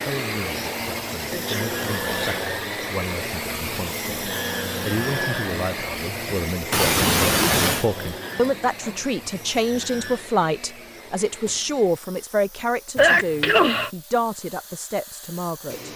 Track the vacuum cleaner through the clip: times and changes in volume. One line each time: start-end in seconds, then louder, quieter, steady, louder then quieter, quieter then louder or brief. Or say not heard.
0.0-15.9 quieter.